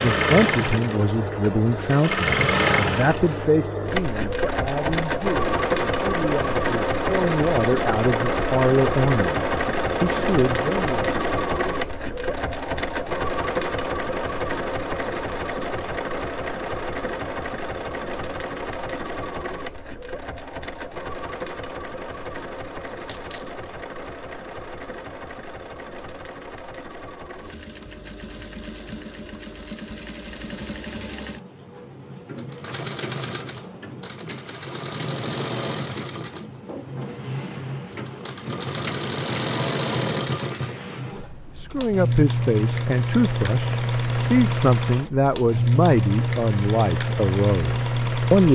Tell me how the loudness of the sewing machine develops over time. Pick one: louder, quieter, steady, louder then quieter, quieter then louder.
quieter then louder.